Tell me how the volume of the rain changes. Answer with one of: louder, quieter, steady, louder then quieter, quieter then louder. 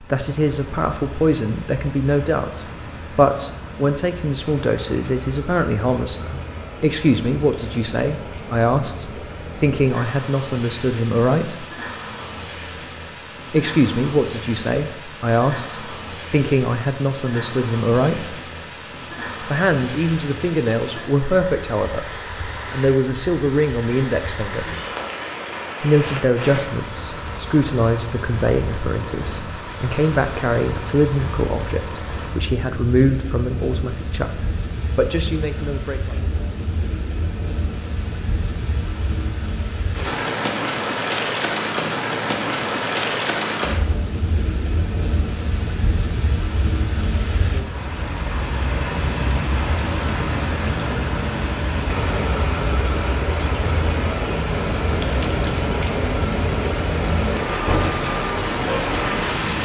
louder.